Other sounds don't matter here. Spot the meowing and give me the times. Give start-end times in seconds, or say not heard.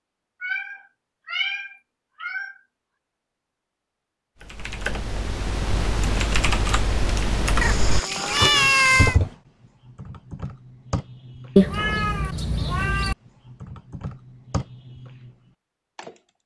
0.4-2.6, 7.6-9.2, 11.6-13.2.